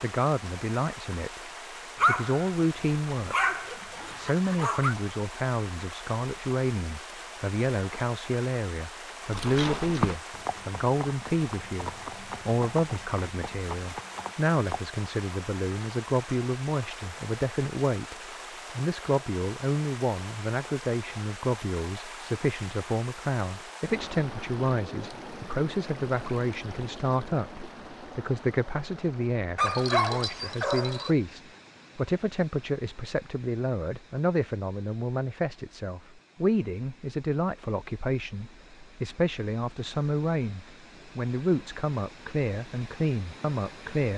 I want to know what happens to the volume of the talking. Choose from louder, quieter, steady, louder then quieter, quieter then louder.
steady.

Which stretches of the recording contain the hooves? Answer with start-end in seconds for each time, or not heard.
9.3-14.8.